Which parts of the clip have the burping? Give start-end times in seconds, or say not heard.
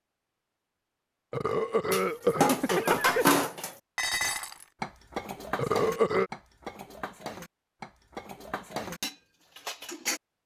1.3-3.4, 5.5-6.3.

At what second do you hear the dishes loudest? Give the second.
3 s.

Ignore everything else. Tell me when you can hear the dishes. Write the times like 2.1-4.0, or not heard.
1.9-10.2.